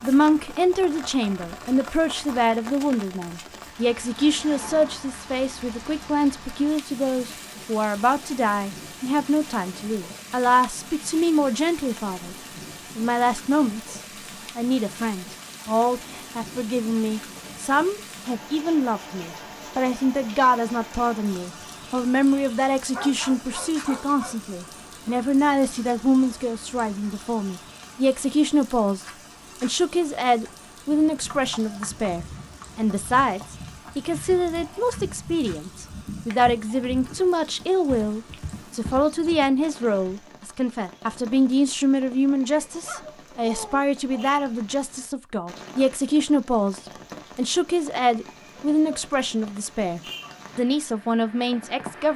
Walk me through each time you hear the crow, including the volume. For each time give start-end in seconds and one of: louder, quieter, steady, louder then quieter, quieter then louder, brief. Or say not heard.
not heard.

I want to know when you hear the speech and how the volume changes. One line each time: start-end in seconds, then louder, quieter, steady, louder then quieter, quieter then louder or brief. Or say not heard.
0.0-12.3 steady
12.9-52.1 steady.